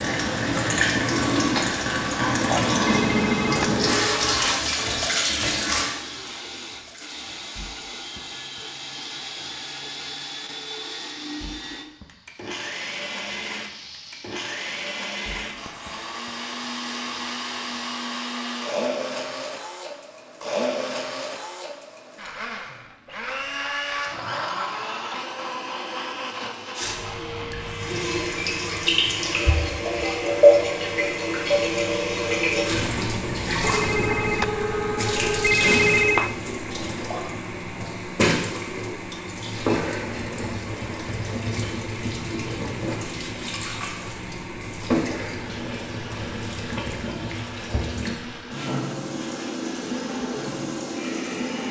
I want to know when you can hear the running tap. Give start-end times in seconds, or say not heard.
0.0-18.6, 26.8-51.6.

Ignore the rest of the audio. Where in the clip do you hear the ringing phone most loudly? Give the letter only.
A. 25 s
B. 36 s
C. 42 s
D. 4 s
B.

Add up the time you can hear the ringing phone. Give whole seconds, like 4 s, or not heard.
4 s.